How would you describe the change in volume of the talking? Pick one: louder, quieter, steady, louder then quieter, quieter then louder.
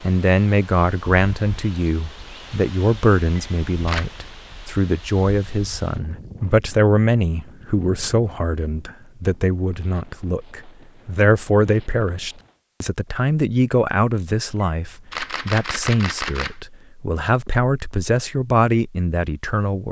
steady.